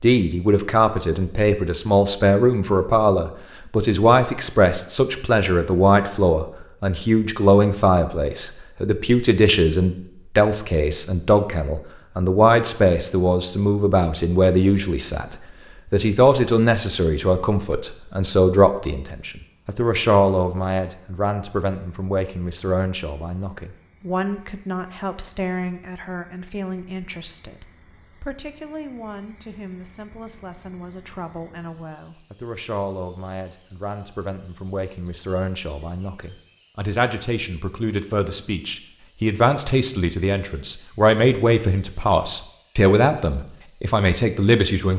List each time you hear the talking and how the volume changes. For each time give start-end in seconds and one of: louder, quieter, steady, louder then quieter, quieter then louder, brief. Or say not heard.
0.0-44.9 quieter then louder.